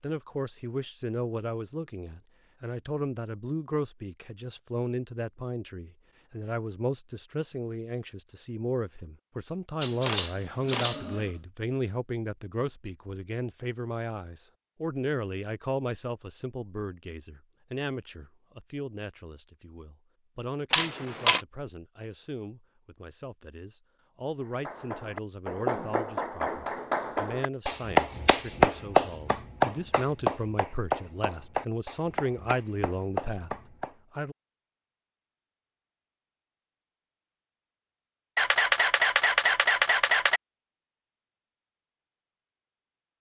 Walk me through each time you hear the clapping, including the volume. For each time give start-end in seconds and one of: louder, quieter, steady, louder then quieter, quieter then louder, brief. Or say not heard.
24.5-33.9 louder then quieter.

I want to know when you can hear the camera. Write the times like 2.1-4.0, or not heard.
9.8-11.2, 20.7-21.4, 38.4-40.4.